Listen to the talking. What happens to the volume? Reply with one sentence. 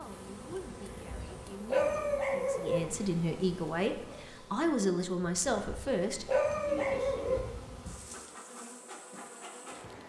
The loudness of the talking goes up.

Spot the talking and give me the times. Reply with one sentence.
The talking can be heard from 0.0 to 6.3 s.